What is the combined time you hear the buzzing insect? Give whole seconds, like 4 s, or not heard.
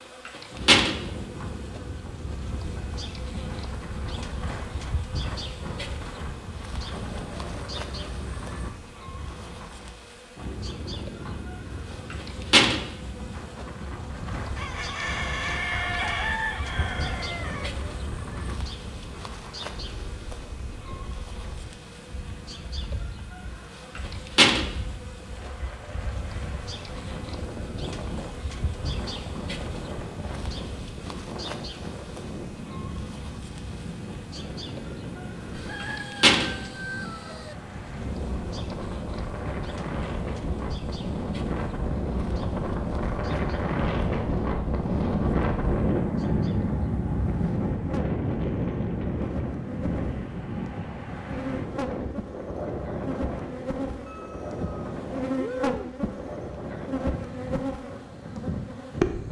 59 s.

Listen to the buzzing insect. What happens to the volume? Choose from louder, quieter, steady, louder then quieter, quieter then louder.
steady.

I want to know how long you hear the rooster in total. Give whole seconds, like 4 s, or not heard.
7 s.